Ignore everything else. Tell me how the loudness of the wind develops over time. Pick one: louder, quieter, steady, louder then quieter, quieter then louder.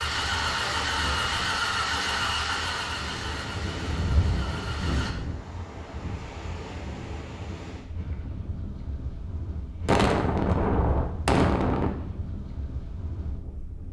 louder then quieter.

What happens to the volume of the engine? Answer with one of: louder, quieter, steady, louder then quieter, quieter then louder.
quieter.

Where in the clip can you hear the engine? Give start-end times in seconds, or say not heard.
0.0-5.2.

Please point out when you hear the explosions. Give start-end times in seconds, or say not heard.
9.8-11.9.